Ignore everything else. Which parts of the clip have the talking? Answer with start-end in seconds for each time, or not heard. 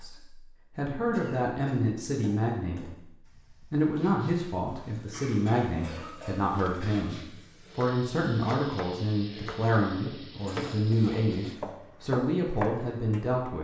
0.0-3.0, 3.7-13.5.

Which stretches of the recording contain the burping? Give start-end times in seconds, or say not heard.
not heard.